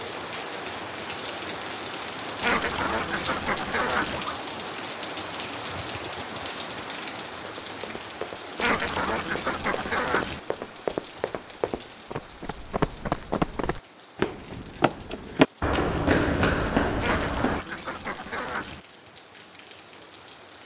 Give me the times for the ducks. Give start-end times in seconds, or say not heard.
2.4-4.2, 8.6-10.4, 17.0-18.8.